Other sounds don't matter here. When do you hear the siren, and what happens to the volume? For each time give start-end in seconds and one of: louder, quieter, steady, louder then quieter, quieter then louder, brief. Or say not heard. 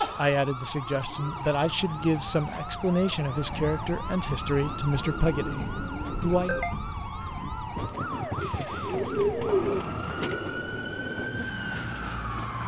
0.0-12.6 steady.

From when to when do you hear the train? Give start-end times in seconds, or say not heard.
3.2-12.6.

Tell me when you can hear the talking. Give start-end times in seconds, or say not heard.
0.0-6.6.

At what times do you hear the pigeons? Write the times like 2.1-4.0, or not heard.
0.8-2.6, 4.6-6.7, 8.4-10.4.